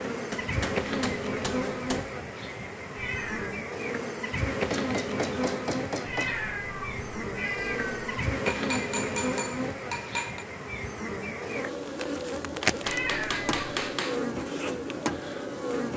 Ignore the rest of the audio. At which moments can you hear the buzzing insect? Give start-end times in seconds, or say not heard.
0.0-15.9.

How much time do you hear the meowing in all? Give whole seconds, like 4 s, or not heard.
4 s.